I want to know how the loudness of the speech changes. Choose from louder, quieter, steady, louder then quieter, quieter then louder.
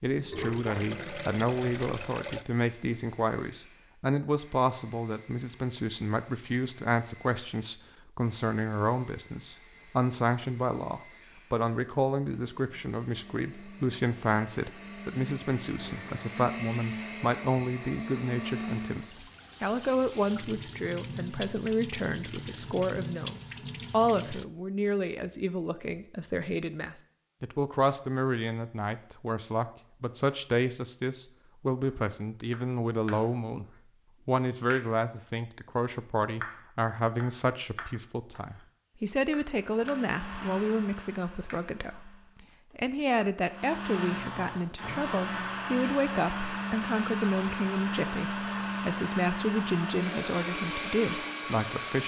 steady.